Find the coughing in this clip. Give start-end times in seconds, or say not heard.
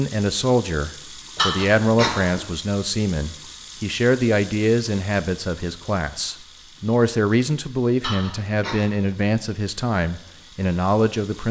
1.4-2.5, 8.0-8.8.